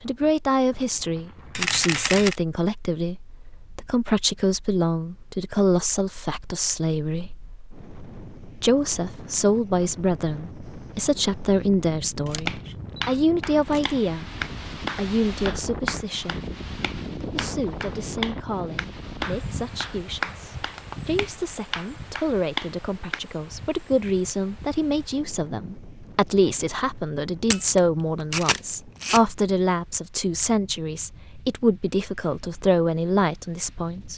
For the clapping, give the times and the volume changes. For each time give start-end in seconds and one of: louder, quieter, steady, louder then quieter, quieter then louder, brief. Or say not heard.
12.4-23.2 steady.